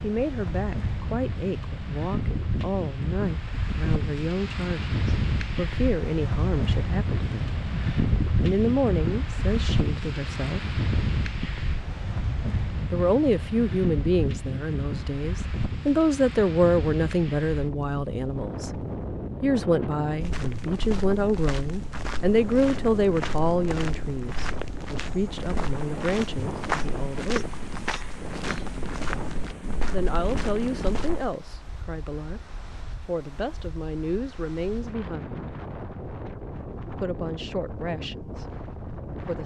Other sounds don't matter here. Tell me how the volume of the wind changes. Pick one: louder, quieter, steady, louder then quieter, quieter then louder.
quieter.